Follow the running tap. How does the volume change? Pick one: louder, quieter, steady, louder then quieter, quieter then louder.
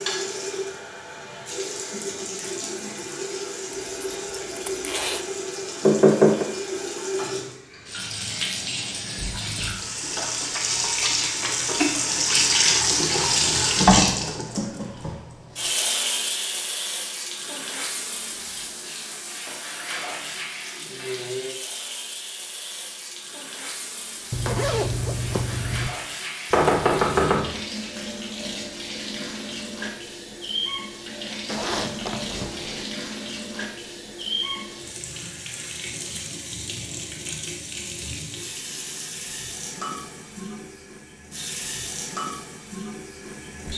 louder then quieter.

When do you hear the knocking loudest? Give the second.
6 s.